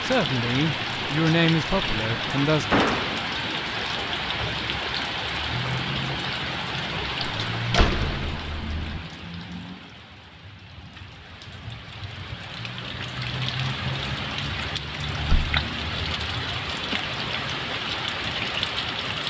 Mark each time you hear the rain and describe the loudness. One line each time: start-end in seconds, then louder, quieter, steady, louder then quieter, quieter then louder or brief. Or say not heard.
0.0-19.2 quieter then louder.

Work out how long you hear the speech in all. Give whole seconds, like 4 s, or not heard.
3 s.